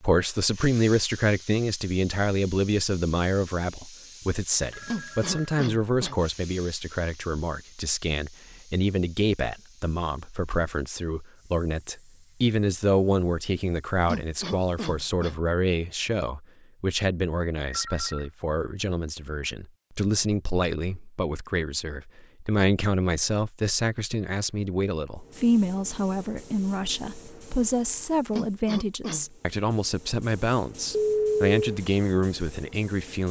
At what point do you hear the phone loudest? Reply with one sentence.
The loudest moment of the phone is at 31 seconds.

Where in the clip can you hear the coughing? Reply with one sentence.
The coughing can be heard from 4.8 to 6.2 s, from 14.1 to 15.4 s and from 28.3 to 29.2 s.